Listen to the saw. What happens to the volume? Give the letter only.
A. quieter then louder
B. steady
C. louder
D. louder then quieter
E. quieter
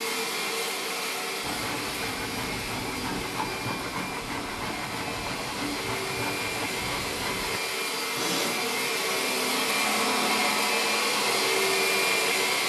B.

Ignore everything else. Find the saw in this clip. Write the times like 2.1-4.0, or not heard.
1.4-7.6.